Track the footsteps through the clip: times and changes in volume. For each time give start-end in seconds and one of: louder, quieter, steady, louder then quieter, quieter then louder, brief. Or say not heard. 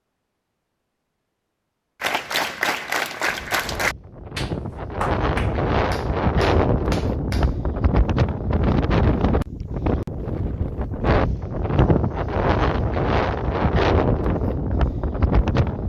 not heard.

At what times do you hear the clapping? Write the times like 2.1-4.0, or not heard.
2.0-7.8.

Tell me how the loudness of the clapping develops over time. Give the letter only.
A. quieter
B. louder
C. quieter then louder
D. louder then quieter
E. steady
A.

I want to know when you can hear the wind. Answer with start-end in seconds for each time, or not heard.
3.2-15.8.